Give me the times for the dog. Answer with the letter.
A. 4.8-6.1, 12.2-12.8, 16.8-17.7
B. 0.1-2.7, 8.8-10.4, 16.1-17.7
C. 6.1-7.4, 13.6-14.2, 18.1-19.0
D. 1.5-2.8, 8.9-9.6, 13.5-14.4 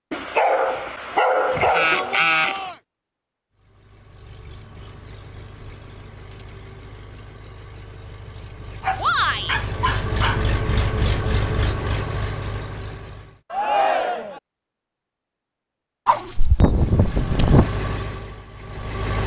B.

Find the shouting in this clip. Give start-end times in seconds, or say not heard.
1.5-2.8, 8.9-9.6, 13.5-14.4.